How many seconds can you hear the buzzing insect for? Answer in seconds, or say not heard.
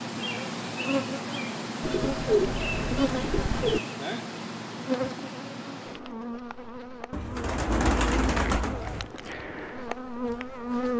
11 s.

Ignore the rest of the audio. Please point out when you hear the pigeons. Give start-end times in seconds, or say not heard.
1.8-3.8, 7.1-9.1.